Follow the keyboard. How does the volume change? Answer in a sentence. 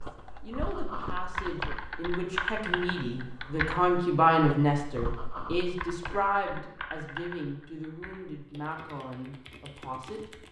The loudness of the keyboard goes down.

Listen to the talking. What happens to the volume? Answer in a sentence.
The volume of the talking goes up, then down.